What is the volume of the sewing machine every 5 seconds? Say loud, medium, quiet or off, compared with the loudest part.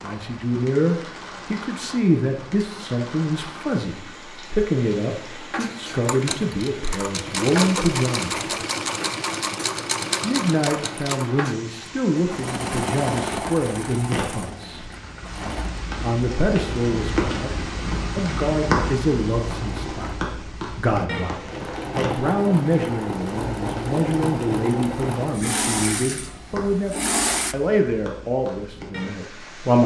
off, loud, loud, medium, loud, loud.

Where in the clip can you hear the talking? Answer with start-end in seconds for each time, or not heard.
0.0-8.5, 10.2-14.9, 16.0-21.4, 21.9-29.8.